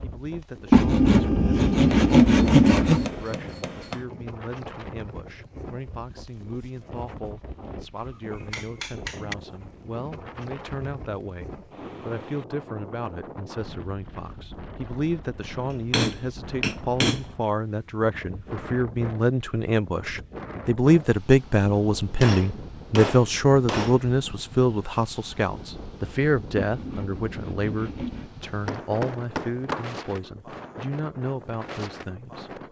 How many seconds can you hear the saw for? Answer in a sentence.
The saw can be heard for 4 seconds in total.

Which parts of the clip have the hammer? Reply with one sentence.
You can hear the hammer from 1.9 to 4.0 s, from 8.0 to 9.3 s, from 15.7 to 17.2 s, from 22.2 to 24.0 s and from 28.4 to 30.1 s.